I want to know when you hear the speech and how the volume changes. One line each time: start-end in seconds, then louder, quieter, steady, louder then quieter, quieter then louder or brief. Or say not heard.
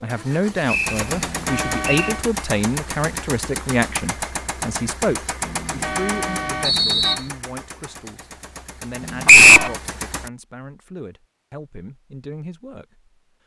0.0-13.1 quieter.